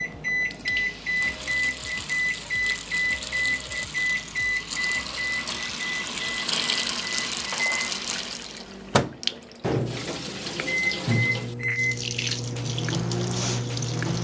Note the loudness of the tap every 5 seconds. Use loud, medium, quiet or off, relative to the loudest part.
medium, loud, loud.